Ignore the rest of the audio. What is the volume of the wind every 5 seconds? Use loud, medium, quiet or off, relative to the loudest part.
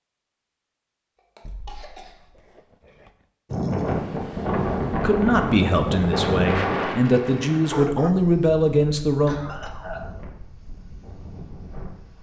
loud, loud, quiet.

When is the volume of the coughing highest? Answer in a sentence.
The volume of the coughing peaks at 10 seconds.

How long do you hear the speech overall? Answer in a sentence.
You can hear the speech for 4 seconds altogether.